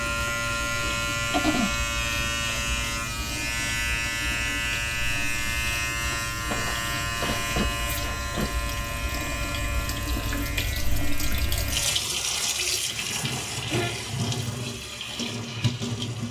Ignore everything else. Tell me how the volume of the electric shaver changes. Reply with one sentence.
The loudness of the electric shaver goes down.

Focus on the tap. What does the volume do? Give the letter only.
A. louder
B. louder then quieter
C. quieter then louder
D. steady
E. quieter
A.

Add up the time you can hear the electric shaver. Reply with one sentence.
You can hear the electric shaver for 12 seconds altogether.